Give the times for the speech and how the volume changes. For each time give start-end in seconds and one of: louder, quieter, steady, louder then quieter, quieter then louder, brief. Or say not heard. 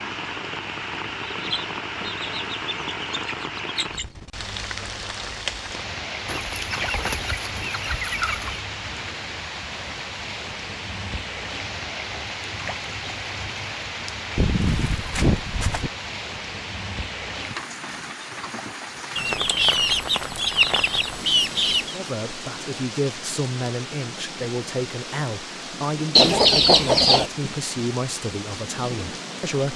21.9-29.7 steady.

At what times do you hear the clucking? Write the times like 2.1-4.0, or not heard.
1.3-4.0, 6.2-8.6, 14.3-15.9, 19.1-21.9, 26.1-27.3.